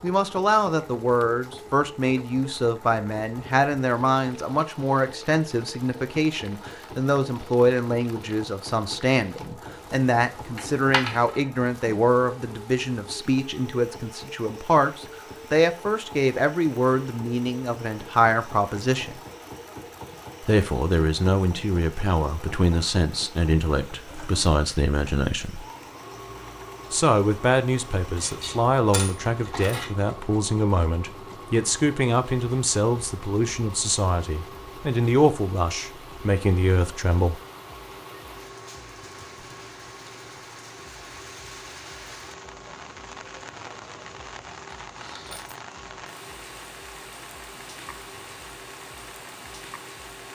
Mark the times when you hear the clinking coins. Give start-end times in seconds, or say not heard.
10.6-11.4, 28.1-29.9, 44.9-45.5.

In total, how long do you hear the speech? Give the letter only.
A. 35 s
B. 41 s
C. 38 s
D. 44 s
A.